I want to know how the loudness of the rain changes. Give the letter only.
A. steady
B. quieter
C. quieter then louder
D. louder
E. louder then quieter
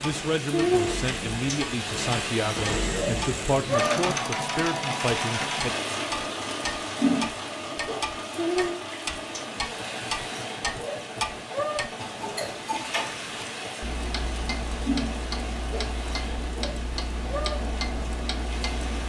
B.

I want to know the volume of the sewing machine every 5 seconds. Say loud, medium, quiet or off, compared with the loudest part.
loud, loud, medium, medium.